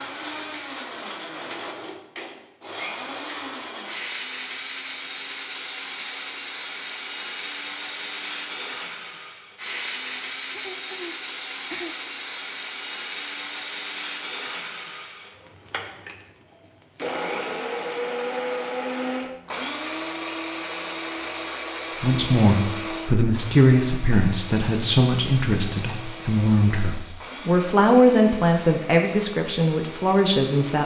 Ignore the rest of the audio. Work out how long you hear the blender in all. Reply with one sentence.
The blender can be heard for 31 seconds in total.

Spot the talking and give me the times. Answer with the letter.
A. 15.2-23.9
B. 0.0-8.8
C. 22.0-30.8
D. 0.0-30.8
C.